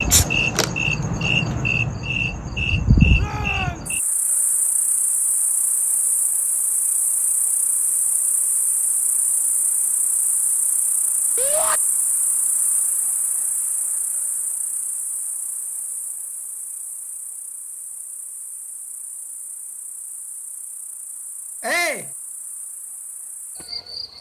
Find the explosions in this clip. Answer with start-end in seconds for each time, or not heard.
not heard.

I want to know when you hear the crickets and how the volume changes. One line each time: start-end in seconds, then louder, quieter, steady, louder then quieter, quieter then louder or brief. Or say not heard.
0.0-24.1 quieter.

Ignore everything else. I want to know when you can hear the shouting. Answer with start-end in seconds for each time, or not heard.
3.1-3.9, 11.3-11.8, 21.6-22.1.